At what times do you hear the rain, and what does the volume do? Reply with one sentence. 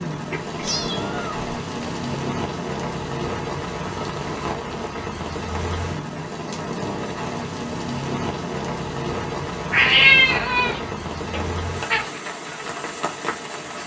The rain can be heard from 0.0 to 13.8 s, at a steady volume.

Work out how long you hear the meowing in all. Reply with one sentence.
The meowing can be heard for 4 seconds in total.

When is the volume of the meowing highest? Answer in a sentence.
The volume of the meowing peaks at 10 seconds.